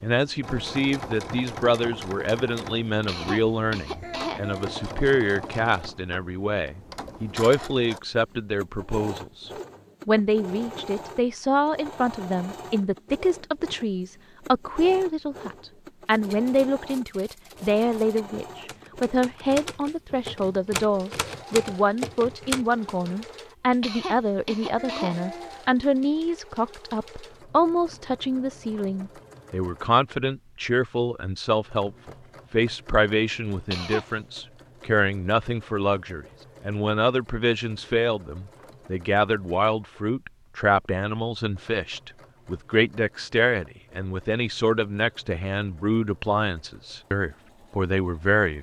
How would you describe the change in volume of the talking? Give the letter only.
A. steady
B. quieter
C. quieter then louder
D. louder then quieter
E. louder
A.